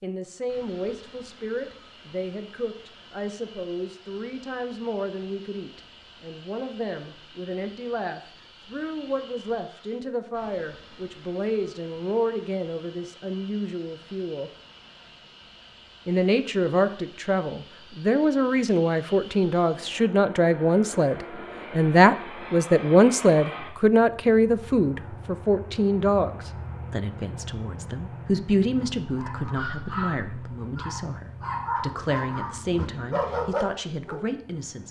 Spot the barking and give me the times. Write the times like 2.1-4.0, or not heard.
28.8-34.2.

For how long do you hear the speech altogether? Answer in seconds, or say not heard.
33 s.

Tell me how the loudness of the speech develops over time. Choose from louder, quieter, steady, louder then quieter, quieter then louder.
louder then quieter.